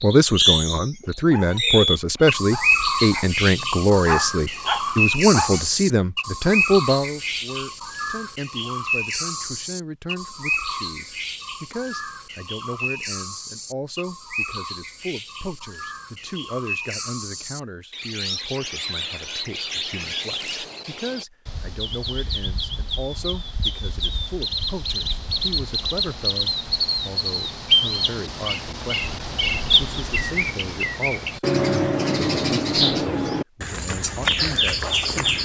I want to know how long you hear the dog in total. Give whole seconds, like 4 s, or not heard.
4 s.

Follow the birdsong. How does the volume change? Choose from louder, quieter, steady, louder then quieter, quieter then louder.
quieter then louder.